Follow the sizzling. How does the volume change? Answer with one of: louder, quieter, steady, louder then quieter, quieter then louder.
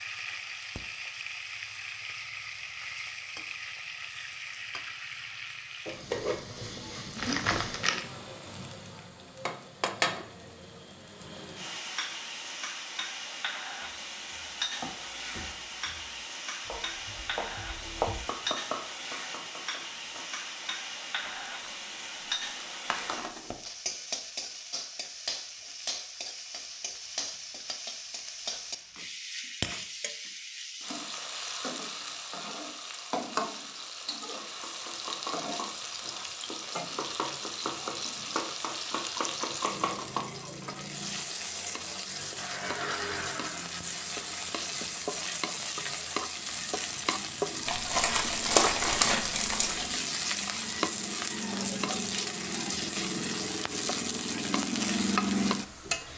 louder.